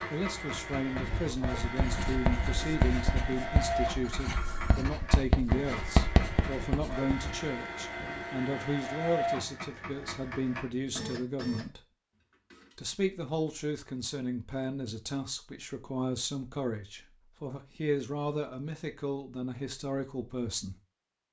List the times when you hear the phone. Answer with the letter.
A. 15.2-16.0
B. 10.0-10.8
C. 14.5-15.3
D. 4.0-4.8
D.